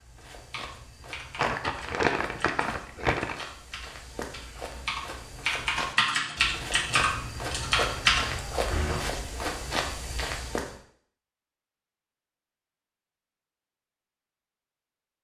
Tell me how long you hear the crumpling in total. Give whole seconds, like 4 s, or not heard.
2 s.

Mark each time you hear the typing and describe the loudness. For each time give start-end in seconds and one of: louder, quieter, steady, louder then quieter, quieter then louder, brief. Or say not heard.
0.5-9.0 louder.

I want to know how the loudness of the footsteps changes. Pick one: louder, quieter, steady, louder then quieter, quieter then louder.
louder.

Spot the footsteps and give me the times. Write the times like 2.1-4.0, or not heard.
0.0-10.8.